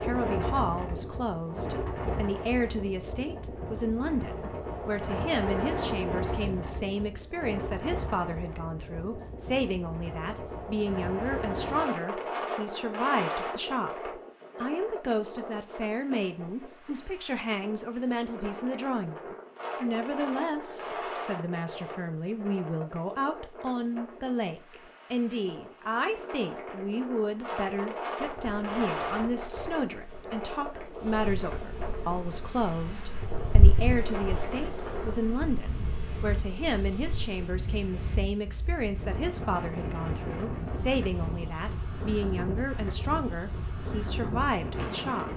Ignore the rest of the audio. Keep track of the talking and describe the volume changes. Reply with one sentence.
The volume of the talking stays about the same.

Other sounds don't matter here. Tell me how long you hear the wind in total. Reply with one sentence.
The wind can be heard for 45 seconds in total.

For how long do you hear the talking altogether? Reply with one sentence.
You can hear the talking for 45 seconds altogether.